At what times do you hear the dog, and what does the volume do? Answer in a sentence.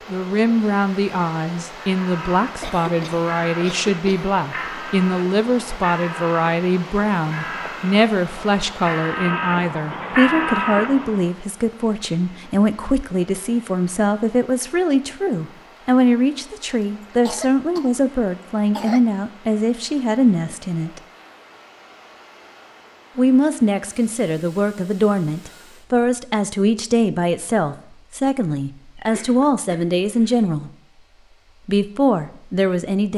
The dog can't be heard in this clip.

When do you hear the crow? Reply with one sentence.
The crow can be heard from 1.8 to 11.3 s.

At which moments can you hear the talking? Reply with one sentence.
You can hear the talking from 0.1 to 21.0 s, from 23.1 to 30.7 s and from 31.6 to 33.1 s.